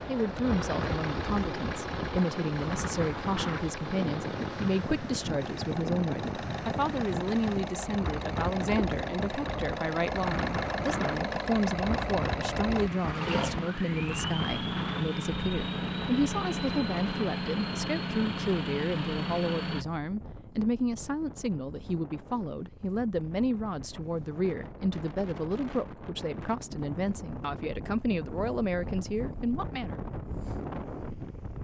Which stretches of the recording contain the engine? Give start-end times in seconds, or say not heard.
0.0-19.9.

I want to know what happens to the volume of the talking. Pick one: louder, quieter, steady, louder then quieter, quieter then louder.
steady.